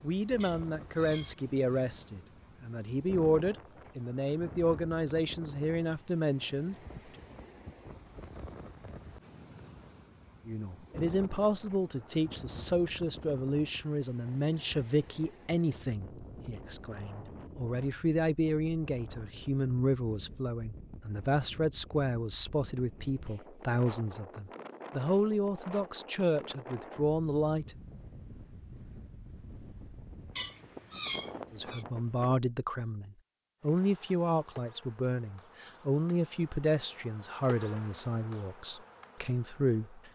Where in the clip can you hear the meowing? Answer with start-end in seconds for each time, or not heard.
0.4-1.8, 30.4-31.9.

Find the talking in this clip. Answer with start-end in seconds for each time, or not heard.
0.0-6.8, 10.4-27.8, 31.5-40.1.